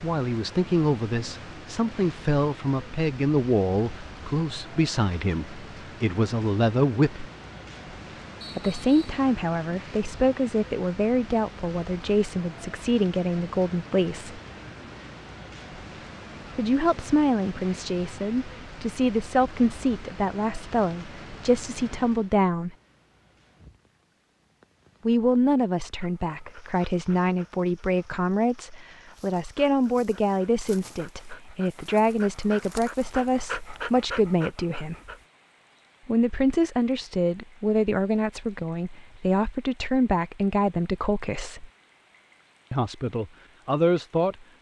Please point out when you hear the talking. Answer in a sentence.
You can hear the talking from 0.0 to 7.3 s, from 8.6 to 14.4 s, from 16.6 to 22.8 s, from 25.1 to 35.0 s, from 36.0 to 41.6 s and from 42.7 to 44.4 s.